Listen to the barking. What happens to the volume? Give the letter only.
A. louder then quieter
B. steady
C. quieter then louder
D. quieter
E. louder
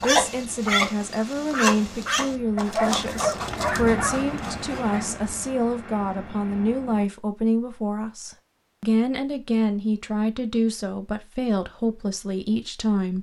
D.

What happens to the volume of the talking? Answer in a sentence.
The volume of the talking stays about the same.